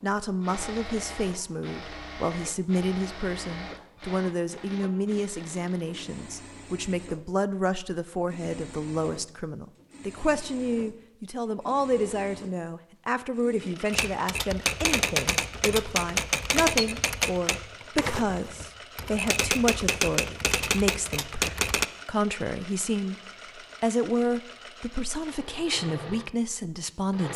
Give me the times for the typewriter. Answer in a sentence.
You can hear the typewriter from 13.9 to 21.9 s.